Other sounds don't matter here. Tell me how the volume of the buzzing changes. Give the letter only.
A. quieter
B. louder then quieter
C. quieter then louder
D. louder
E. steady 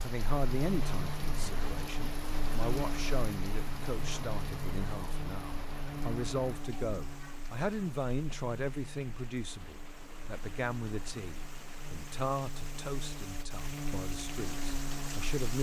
C.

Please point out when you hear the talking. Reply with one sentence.
The talking can be heard from 0.0 to 15.5 s.